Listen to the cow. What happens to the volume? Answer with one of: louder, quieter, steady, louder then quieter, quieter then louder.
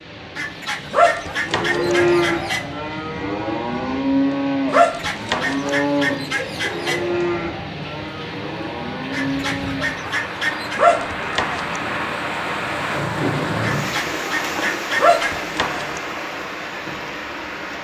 quieter.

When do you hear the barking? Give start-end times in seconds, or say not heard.
0.9-1.9, 4.7-5.7, 10.8-11.8, 14.9-16.0.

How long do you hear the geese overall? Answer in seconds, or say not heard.
8 s.